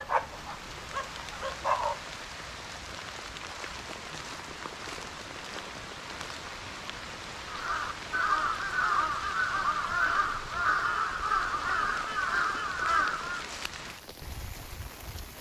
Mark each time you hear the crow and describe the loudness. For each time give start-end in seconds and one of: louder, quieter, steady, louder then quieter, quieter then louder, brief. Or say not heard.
7.5-13.4 steady.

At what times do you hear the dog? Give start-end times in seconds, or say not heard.
0.0-2.0.